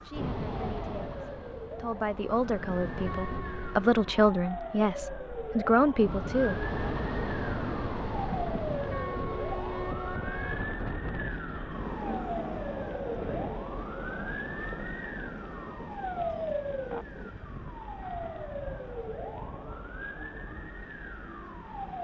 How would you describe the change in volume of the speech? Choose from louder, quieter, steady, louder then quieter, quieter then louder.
louder.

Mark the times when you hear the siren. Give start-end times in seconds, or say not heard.
0.0-21.9.